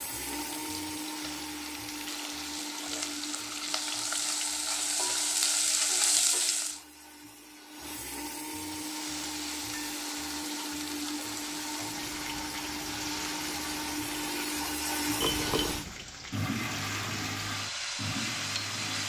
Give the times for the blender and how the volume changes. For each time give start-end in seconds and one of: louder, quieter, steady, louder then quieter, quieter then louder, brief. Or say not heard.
0.0-19.0 quieter then louder.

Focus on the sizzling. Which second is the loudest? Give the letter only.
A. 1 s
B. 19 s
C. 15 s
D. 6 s
D.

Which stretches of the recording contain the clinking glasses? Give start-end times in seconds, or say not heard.
15.2-16.0.